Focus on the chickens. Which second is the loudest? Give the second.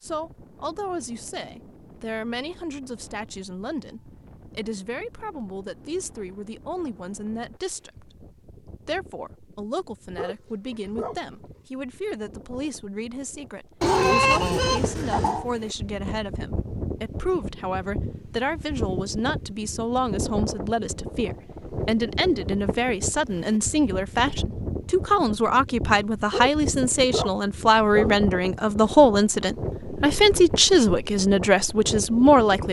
14 s.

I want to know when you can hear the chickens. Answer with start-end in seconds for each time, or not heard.
13.8-15.4.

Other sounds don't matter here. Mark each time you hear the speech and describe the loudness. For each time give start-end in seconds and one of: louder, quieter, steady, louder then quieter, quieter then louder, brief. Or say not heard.
0.0-32.6 louder.